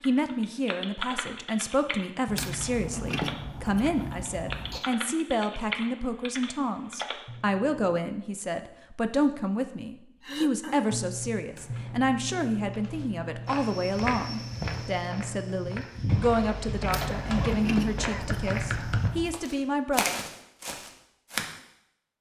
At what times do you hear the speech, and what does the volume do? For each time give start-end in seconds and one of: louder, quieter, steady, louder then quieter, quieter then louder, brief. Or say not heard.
0.1-20.1 steady.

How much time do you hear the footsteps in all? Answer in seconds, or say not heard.
9 s.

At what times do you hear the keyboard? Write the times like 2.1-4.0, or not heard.
0.0-7.8, 10.9-19.0.